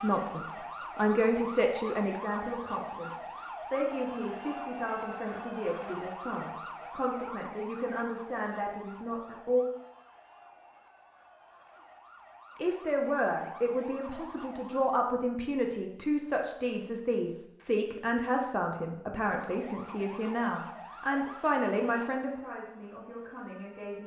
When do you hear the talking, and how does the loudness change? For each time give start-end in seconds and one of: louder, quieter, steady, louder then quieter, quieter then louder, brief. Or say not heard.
0.0-9.7 quieter
12.6-24.0 steady.